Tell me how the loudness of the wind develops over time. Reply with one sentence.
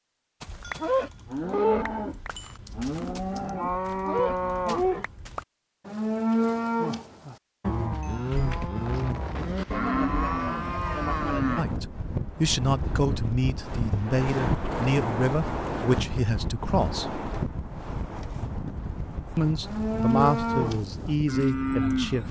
The loudness of the wind goes up, then down.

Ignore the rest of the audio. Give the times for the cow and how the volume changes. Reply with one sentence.
The cow can be heard from 0.4 to 11.7 s, at a steady volume; and briefly from 19.4 to 22.2 s.